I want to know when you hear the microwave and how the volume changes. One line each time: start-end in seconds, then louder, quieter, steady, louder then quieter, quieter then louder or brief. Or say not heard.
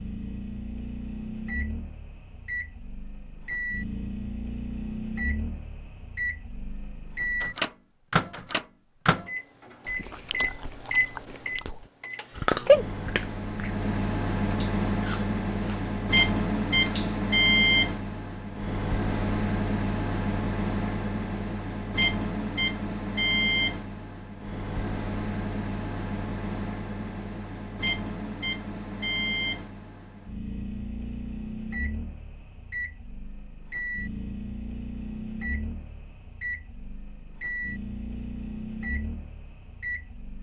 0.0-40.3 louder then quieter.